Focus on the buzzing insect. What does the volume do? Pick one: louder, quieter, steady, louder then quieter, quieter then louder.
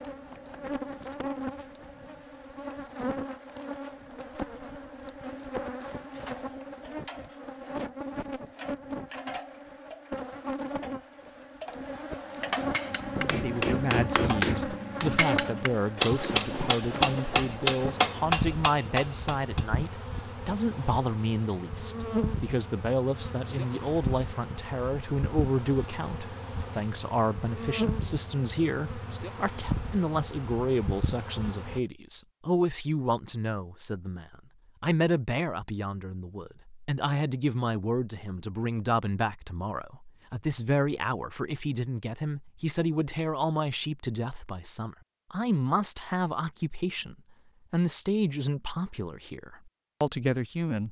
steady.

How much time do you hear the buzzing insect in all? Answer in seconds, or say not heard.
32 s.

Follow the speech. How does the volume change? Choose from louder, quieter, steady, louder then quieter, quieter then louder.
steady.